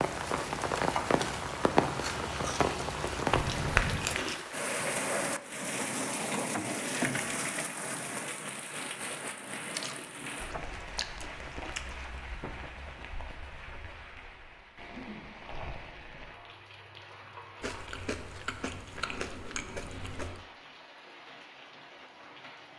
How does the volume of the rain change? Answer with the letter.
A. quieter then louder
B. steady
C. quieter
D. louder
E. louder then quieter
C.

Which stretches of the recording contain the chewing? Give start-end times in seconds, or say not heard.
1.9-4.5, 9.5-12.2, 17.6-20.4.